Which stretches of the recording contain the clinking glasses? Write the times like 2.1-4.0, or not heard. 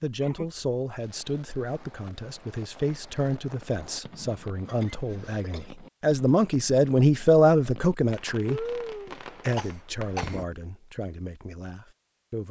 not heard.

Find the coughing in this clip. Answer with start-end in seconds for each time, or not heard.
0.2-0.7, 4.7-5.7, 8.4-10.4.